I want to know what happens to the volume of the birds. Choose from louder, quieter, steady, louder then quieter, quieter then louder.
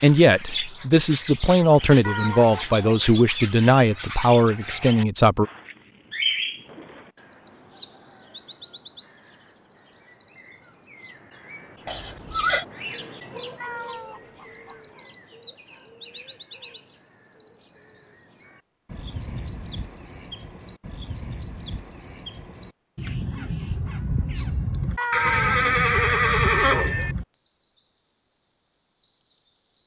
steady.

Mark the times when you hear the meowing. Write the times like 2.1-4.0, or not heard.
2.0-2.8, 13.6-14.8, 24.9-25.6.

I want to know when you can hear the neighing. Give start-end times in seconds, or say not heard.
11.8-12.7, 25.1-27.1.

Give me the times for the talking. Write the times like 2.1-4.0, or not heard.
0.0-5.5.